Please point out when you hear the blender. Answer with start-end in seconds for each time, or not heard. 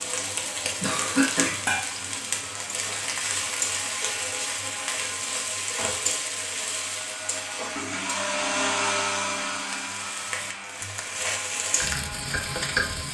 0.0-13.0.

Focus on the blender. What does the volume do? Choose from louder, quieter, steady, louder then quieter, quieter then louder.
louder then quieter.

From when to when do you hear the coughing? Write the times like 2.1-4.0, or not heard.
0.8-1.6.